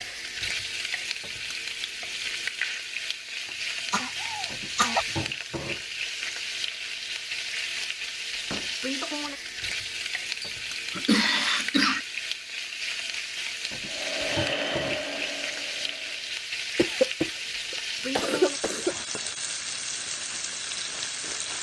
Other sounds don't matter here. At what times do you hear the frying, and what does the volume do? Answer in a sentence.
You can hear the frying from 0.0 to 21.5 s, at a steady volume.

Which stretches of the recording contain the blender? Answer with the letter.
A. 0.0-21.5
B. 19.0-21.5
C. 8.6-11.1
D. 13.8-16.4
D.